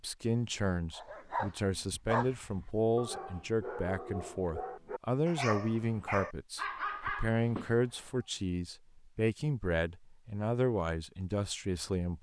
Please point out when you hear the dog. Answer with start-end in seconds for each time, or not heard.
0.9-8.1.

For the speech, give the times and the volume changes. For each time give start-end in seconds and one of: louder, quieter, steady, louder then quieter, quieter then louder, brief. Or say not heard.
0.0-12.1 steady.